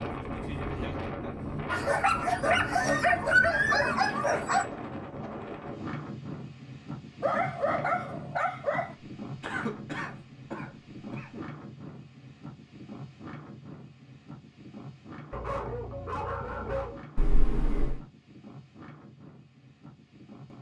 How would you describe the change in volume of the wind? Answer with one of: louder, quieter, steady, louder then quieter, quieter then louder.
quieter.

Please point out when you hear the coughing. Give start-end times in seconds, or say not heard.
1.6-2.5, 9.4-11.4, 17.1-18.0.